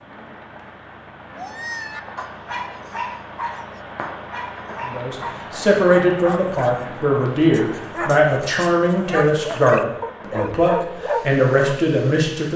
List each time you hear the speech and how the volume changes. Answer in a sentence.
The speech can be heard from 4.8 to 12.5 s, at a steady volume.